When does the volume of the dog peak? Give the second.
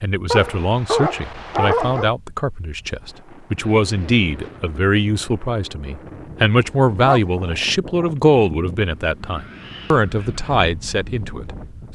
2 s.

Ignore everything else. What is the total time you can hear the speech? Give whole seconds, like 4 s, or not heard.
12 s.